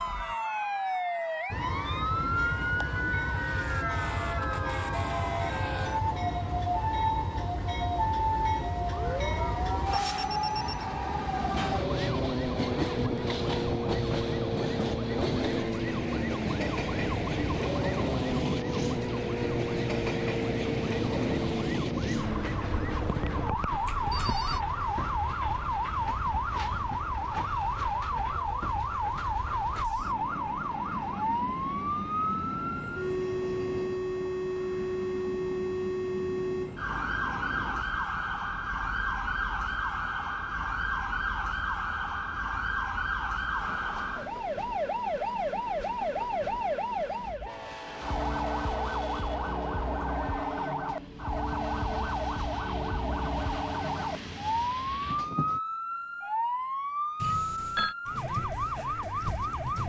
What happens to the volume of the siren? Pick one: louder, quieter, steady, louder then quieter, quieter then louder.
steady.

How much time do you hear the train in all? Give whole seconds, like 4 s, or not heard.
54 s.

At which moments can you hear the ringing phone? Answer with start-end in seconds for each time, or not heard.
9.0-10.8, 23.8-24.6, 57.2-58.0.